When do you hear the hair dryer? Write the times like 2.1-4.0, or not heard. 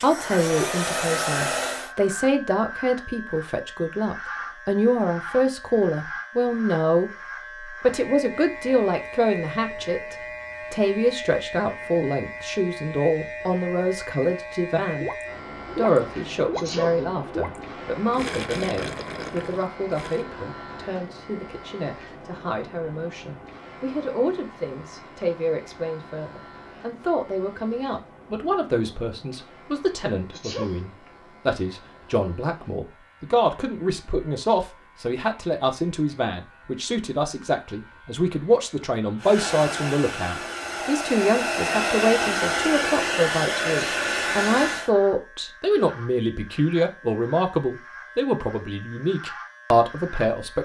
0.0-1.9, 39.2-44.9.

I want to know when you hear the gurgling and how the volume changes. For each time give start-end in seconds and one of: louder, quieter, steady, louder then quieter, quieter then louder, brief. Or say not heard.
14.9-20.2 quieter.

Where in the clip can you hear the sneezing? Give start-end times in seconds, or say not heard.
16.5-17.1, 30.3-30.9.